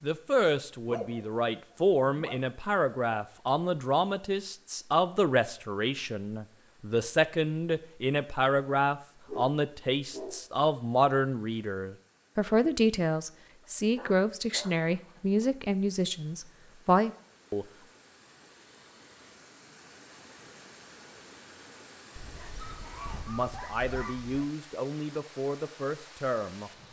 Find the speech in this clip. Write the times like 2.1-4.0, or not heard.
0.0-17.6, 23.2-26.7.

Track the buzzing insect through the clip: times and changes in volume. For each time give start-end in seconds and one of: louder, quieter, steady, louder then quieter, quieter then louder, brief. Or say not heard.
not heard.